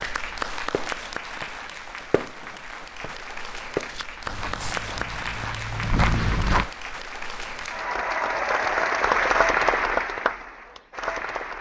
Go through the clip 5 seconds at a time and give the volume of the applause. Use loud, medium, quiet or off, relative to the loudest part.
medium, loud, medium.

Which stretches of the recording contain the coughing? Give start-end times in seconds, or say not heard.
not heard.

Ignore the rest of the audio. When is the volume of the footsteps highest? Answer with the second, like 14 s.
6 s.